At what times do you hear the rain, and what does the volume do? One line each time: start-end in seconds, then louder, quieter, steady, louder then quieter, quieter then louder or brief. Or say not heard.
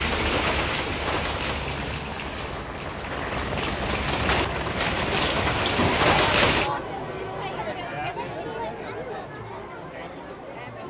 0.0-6.7 quieter then louder.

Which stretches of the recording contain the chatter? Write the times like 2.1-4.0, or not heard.
4.4-10.8.